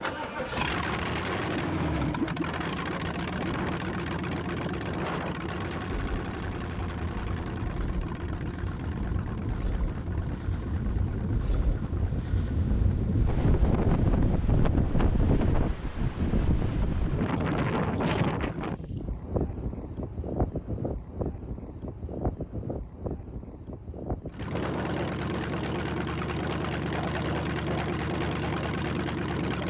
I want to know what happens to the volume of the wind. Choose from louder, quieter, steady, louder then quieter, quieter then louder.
louder then quieter.